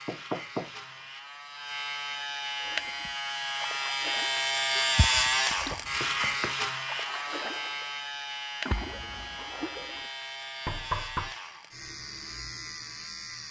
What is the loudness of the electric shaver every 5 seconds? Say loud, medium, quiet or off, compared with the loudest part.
loud, loud, medium.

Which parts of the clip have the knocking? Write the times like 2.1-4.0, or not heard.
0.1-0.7, 4.8-6.5, 10.7-11.3.